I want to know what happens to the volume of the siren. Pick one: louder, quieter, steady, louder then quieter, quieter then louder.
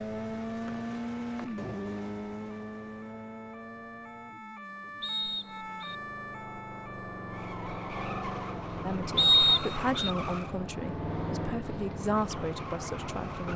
louder.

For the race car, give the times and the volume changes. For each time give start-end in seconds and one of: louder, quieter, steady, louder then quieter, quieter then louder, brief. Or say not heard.
0.0-13.5 quieter then louder.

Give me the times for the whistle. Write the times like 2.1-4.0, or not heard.
0.7-1.7, 5.0-6.0, 9.2-10.1.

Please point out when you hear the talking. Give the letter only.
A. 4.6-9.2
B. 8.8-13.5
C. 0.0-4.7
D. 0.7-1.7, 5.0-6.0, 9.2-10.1
B.